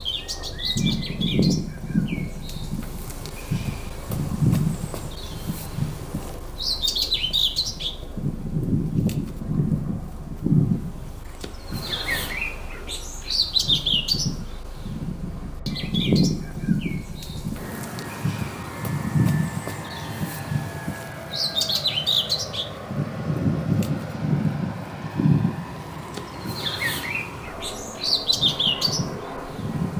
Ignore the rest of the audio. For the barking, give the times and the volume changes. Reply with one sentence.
You can't hear the barking here.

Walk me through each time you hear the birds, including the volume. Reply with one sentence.
You can hear the birds from 0.0 to 29.9 s, at a steady volume.